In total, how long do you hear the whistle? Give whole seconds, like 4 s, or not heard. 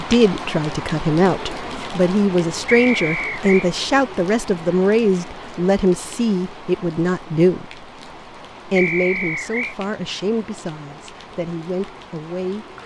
2 s.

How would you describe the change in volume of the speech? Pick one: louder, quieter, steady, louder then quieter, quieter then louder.
quieter.